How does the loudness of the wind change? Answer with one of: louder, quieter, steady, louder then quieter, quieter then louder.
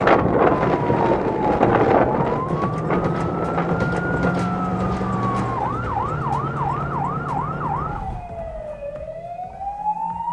quieter.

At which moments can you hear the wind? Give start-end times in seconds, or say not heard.
0.0-8.4.